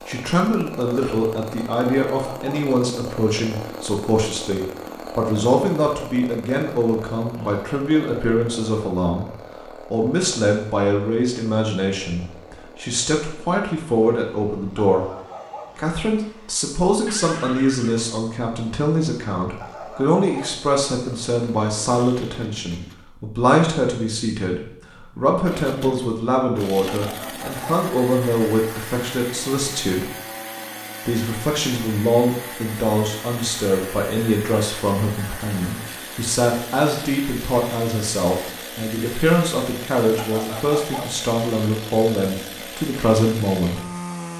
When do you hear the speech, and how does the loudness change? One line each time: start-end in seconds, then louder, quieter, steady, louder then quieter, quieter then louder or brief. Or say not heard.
0.1-15.1 steady
15.8-30.1 steady
31.1-43.8 steady.